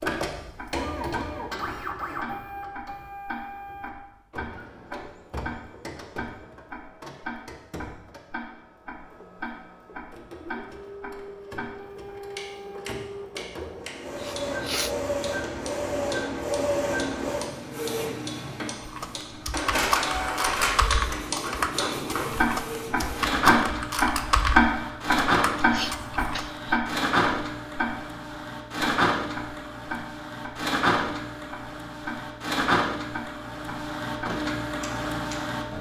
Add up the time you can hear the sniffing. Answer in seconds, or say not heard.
2 s.